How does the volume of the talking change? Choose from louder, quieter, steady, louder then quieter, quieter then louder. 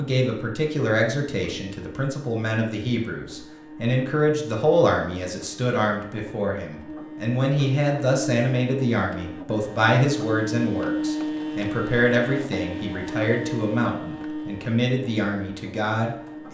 steady.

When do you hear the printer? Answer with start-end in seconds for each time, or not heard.
0.0-16.4.